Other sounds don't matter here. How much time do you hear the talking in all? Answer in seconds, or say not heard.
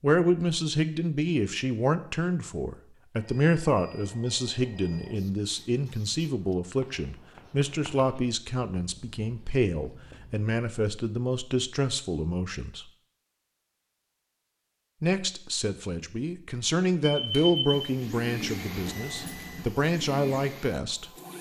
19 s.